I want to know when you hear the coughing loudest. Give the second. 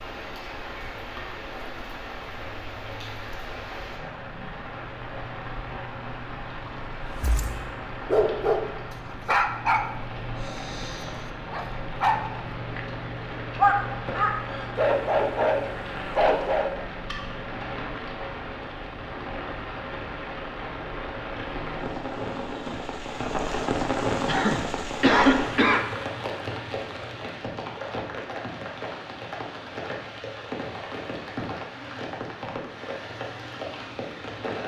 25 s.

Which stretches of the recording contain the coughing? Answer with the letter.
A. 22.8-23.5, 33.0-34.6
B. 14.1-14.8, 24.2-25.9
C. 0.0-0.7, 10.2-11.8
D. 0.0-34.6
B.